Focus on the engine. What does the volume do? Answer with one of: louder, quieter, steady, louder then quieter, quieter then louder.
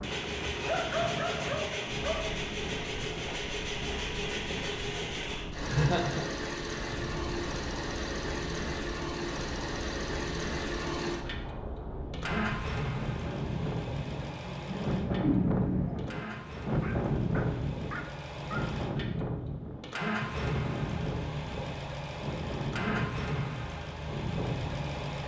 quieter then louder.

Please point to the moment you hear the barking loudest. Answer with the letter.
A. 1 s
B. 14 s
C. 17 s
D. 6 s
A.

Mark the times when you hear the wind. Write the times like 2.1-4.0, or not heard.
0.0-25.1.